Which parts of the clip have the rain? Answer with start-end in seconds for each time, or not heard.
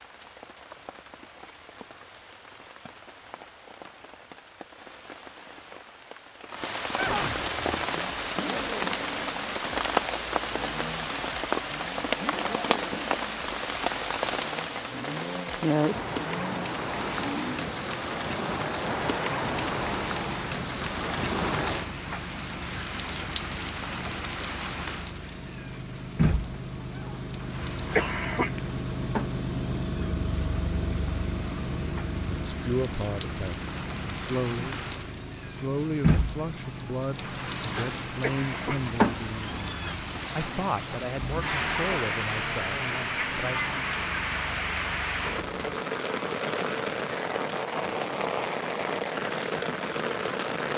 0.0-50.7.